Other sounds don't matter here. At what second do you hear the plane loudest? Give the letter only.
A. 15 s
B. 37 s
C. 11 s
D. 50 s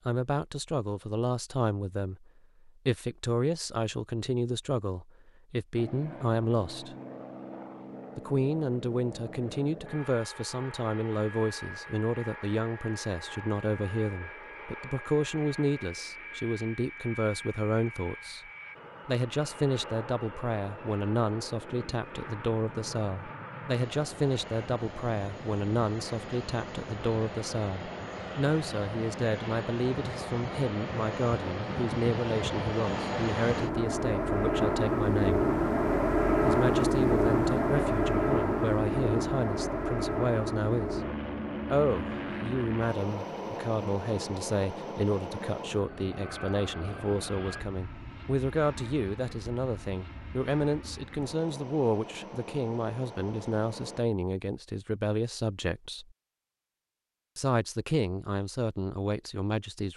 B.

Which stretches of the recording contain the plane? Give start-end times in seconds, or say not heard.
5.8-54.0.